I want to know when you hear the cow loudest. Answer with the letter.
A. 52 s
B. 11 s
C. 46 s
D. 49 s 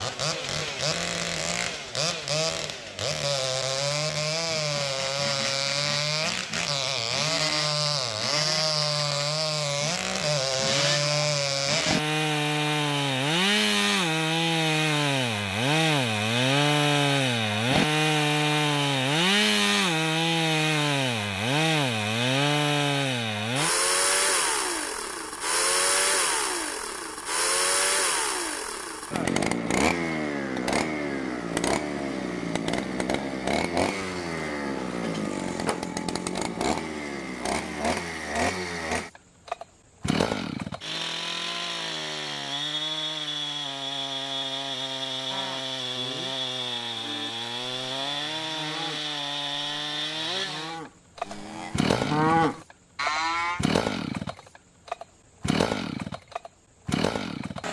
A.